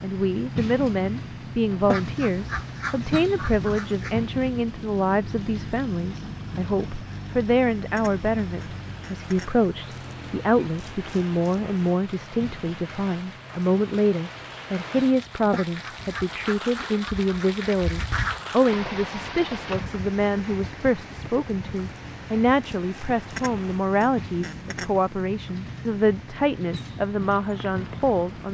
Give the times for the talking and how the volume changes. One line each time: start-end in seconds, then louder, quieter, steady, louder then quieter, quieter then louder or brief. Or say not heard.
0.0-28.4 steady.